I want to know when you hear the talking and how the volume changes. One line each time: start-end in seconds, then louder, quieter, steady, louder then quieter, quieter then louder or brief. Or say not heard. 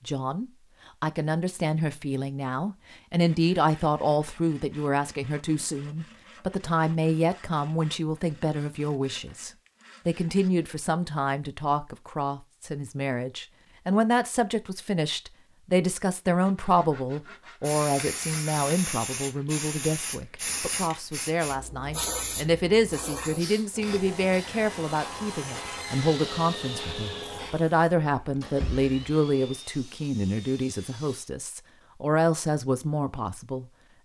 0.1-33.7 steady.